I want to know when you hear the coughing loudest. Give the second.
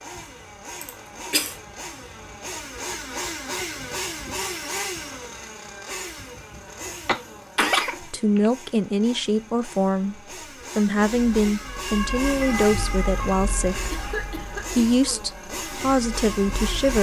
8 s.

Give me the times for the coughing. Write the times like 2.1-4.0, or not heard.
0.8-1.6, 7.0-8.5, 13.9-15.2.